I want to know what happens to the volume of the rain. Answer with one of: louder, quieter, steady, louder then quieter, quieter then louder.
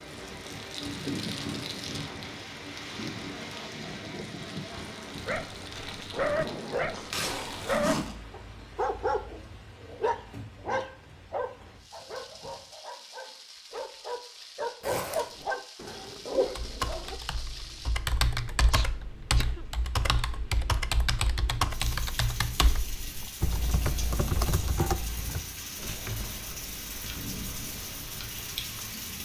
quieter then louder.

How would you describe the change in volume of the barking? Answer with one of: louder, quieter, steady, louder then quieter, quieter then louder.
quieter then louder.